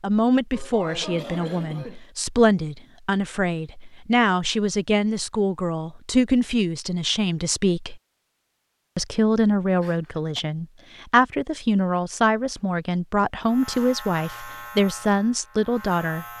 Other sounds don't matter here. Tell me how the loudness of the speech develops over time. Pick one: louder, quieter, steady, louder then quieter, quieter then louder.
steady.